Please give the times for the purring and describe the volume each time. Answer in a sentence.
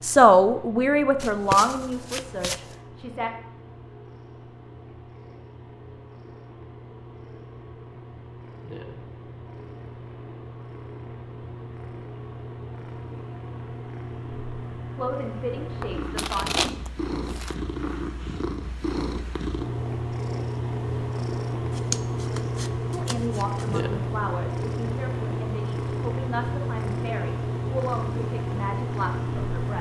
The purring can be heard from 0.0 to 29.7 s, getting louder.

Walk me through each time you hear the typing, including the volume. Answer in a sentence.
You can't hear the typing here.